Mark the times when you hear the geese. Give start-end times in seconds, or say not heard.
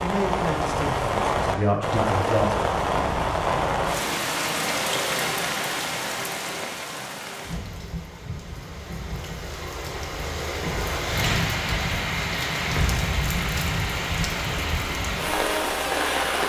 not heard.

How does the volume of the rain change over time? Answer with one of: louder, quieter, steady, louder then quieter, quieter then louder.
quieter then louder.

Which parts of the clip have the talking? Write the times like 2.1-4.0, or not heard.
0.0-2.7.